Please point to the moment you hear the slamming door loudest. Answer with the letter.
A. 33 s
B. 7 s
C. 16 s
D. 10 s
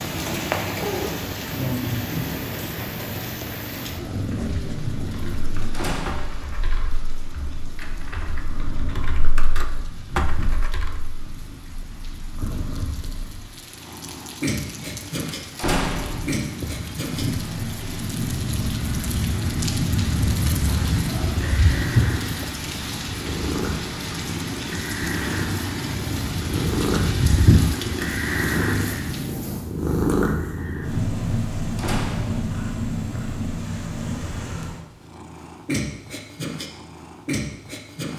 C.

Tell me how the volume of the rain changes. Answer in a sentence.
The volume of the rain goes down, then up.